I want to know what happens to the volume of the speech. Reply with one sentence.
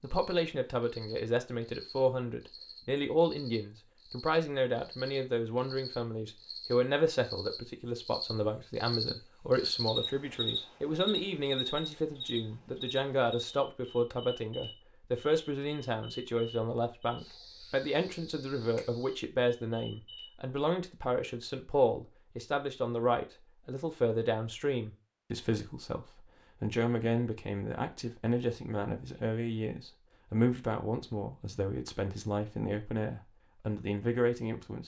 The loudness of the speech stays about the same.